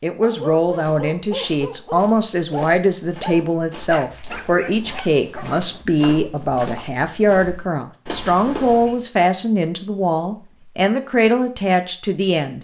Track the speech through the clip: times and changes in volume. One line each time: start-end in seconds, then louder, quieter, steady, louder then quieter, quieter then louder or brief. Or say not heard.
0.0-12.5 steady.